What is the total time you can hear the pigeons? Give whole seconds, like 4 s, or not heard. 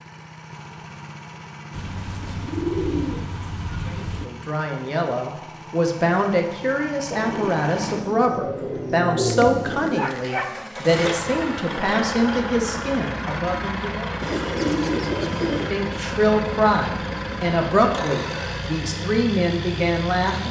7 s.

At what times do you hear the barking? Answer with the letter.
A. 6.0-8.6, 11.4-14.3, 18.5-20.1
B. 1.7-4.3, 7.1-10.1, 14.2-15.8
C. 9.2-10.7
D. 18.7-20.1
C.